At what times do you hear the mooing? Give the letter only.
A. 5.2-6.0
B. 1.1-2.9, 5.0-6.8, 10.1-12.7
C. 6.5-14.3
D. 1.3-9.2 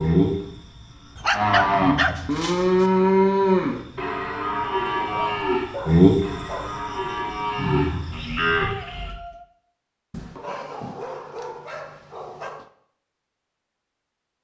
D.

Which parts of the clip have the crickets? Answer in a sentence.
You can hear the crickets from 0.0 to 8.7 s.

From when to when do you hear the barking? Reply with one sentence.
The barking can be heard from 1.1 to 2.9 s, from 5.0 to 6.8 s and from 10.1 to 12.7 s.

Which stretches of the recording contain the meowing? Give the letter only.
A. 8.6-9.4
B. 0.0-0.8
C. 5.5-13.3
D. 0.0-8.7
A.